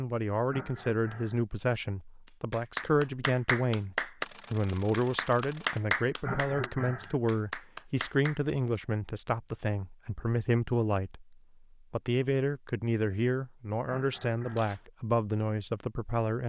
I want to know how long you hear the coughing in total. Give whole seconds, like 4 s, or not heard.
3 s.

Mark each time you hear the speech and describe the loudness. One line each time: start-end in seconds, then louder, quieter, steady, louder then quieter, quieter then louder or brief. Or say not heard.
0.0-16.4 steady.